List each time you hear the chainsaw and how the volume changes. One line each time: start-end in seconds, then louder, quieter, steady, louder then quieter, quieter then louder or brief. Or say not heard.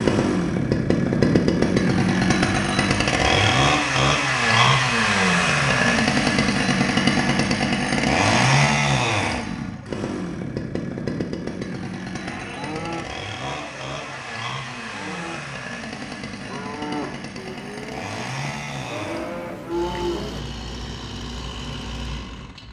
0.0-22.6 quieter.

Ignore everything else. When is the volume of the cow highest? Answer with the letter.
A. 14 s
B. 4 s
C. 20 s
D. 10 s
C.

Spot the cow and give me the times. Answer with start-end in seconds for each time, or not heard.
12.2-20.4.